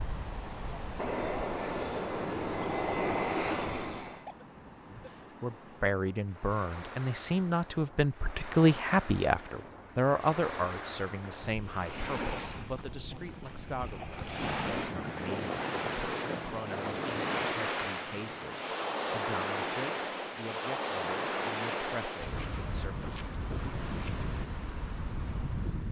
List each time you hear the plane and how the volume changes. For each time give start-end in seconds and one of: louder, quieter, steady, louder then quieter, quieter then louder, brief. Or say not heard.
0.0-4.2 louder.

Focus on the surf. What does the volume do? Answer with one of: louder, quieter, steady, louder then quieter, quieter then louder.
louder.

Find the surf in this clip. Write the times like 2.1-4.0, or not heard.
0.0-25.8.